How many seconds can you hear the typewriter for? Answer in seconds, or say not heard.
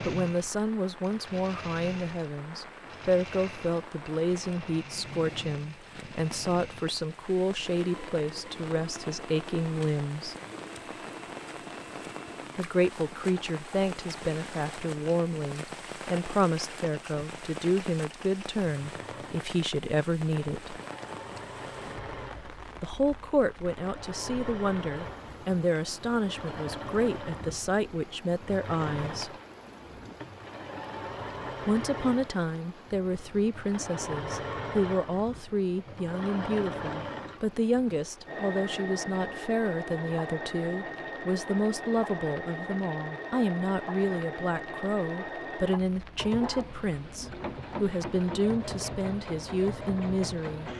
not heard.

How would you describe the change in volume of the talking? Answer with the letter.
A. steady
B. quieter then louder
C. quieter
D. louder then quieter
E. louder
A.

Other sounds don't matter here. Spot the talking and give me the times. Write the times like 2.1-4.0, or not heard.
0.1-10.3, 12.6-20.8, 22.8-29.3, 31.6-50.7.